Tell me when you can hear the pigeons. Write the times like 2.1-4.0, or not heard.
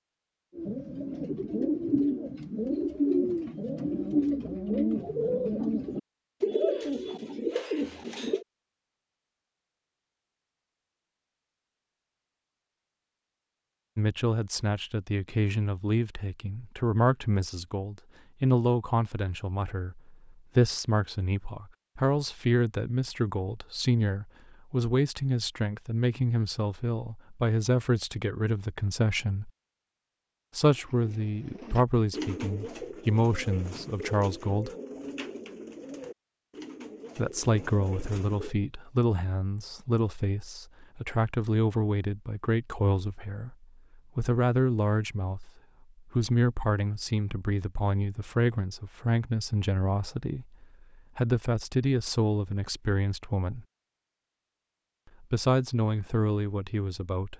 0.6-8.4, 30.7-38.5.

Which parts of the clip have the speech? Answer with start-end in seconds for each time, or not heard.
13.9-29.5, 30.6-34.7, 37.1-43.5, 44.1-45.5, 46.1-53.6, 55.2-57.3.